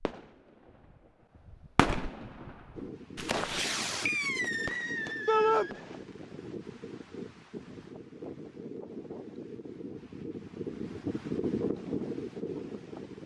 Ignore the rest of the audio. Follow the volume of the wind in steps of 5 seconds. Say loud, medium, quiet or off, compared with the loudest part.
medium, medium, loud.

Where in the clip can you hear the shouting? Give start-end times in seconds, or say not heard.
5.2-5.7.